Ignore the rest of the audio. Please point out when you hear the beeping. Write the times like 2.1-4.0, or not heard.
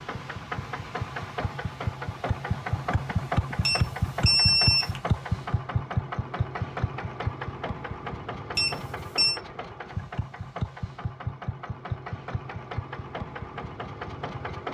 3.6-5.0, 8.6-9.4.